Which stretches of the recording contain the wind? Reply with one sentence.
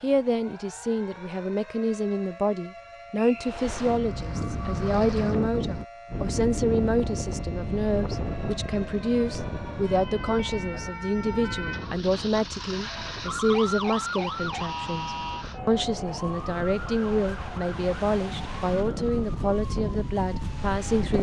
You can hear the wind from 3.4 to 21.1 s.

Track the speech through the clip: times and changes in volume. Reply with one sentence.
The speech can be heard from 0.0 to 21.1 s, at a steady volume.